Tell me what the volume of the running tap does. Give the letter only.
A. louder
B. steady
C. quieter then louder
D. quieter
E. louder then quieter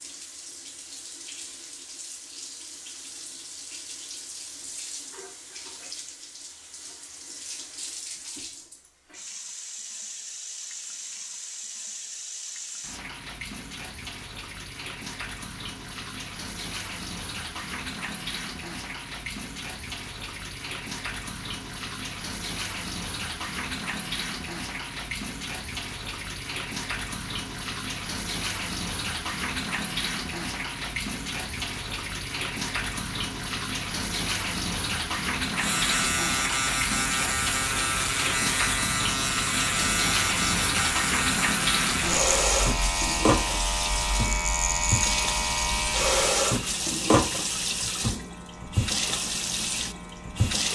A.